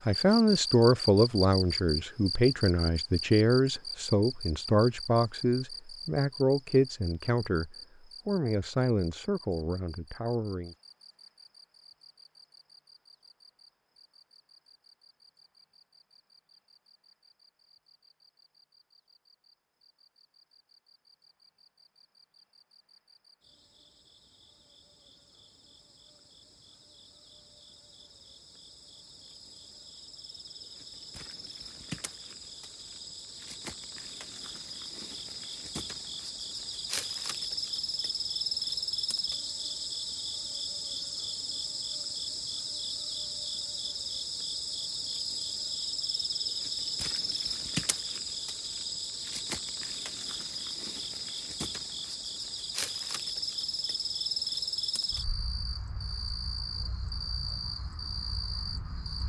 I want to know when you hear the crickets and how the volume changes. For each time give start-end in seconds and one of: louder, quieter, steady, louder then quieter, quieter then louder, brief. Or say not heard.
0.0-59.2 quieter then louder.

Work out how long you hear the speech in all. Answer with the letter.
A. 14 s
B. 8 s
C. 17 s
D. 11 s
D.